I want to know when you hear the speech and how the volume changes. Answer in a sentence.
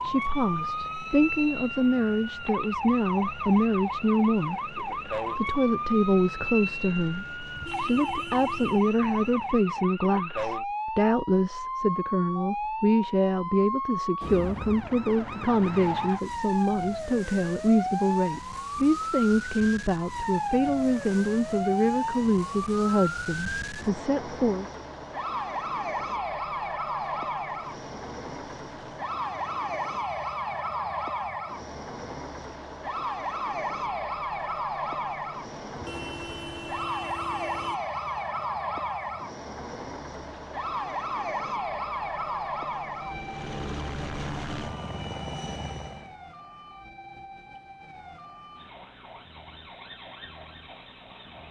You can hear the speech from 0.0 to 24.6 s, at a steady volume.